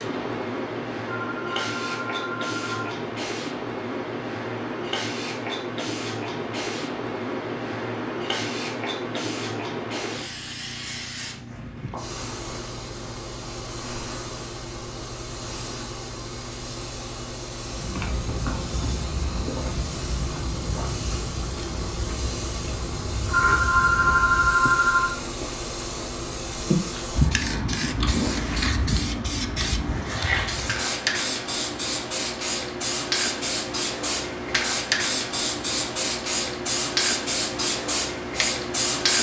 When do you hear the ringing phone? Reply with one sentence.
You can hear the ringing phone from 1.1 to 3.0 s and from 23.3 to 25.1 s.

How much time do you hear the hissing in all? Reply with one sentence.
You can hear the hissing for 39 seconds altogether.